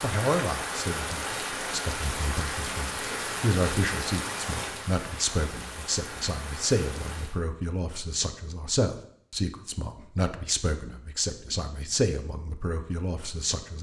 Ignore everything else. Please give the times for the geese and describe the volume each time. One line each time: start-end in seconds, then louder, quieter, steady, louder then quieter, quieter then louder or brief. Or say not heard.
not heard.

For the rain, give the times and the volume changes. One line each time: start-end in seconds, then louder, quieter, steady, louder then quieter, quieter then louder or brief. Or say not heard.
0.0-7.4 quieter.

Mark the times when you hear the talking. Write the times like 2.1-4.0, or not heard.
0.0-13.7.